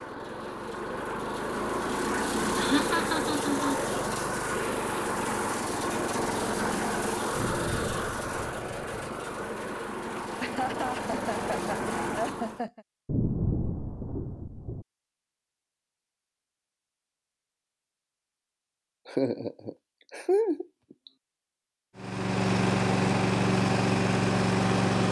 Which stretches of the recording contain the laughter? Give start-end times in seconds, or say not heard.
2.5-3.8, 10.4-12.8, 19.1-20.6.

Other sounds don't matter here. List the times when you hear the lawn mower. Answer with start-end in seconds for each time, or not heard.
0.0-12.7, 21.9-25.0.